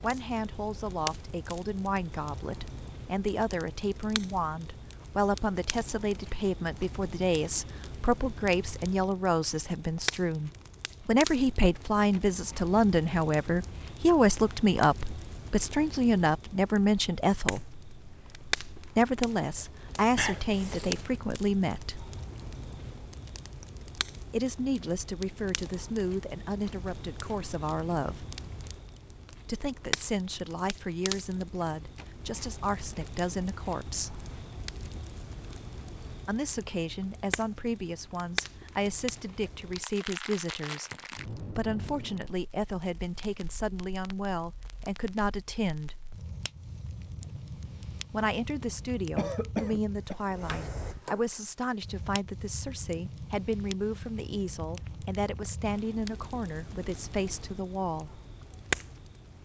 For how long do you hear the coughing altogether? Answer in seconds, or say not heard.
2 s.